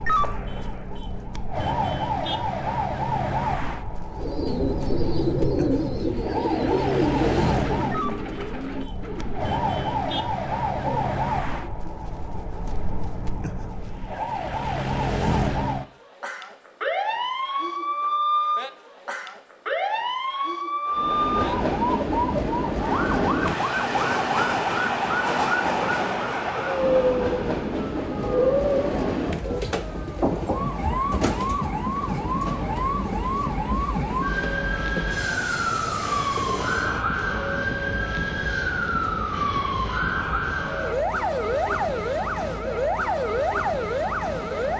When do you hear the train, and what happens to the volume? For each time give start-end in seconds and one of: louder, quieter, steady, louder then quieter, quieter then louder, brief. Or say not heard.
20.9-44.7 quieter.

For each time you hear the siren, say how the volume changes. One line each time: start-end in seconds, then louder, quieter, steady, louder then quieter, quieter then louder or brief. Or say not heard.
0.0-44.7 steady.